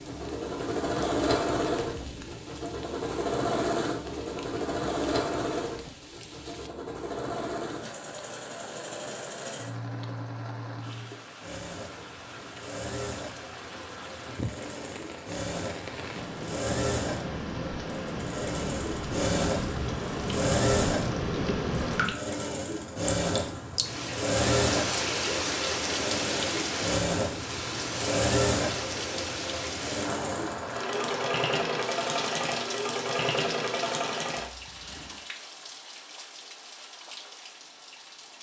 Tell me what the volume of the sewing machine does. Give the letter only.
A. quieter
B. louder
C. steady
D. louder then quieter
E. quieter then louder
E.